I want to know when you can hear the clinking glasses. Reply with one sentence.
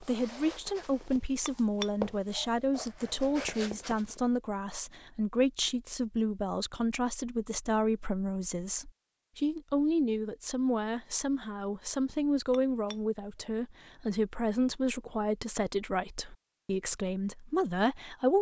You can hear the clinking glasses from 1.4 to 2.5 s and from 12.5 to 13.5 s.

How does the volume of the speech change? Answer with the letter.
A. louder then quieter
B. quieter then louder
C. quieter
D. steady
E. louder
D.